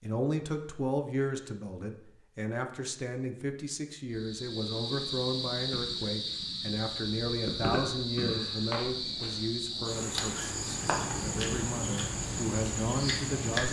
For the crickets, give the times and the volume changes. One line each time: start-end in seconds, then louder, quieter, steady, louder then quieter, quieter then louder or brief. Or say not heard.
4.1-13.6 steady.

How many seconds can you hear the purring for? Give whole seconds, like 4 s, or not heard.
3 s.